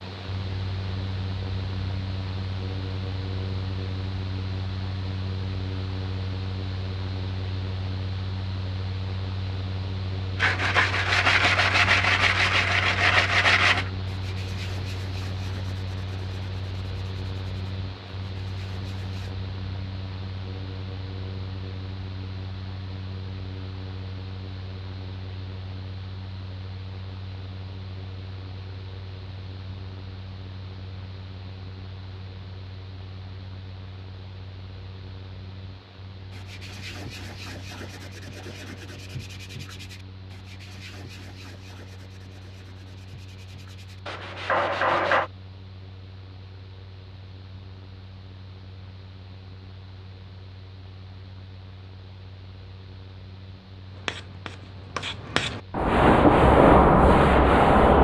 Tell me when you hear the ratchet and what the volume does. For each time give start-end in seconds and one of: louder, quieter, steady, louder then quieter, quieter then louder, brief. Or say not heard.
not heard.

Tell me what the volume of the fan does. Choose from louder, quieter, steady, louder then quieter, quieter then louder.
quieter.